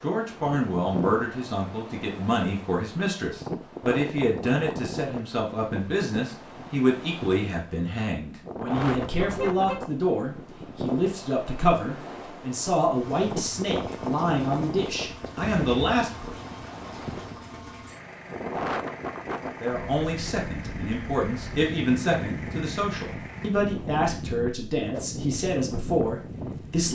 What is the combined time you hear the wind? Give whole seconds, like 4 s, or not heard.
27 s.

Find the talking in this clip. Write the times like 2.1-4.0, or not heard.
0.0-16.4, 19.6-26.9.